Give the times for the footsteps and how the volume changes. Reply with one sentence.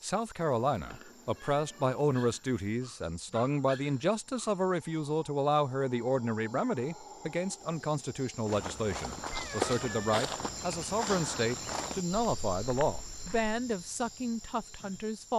The footsteps can be heard from 8.4 to 13.6 s, getting quieter.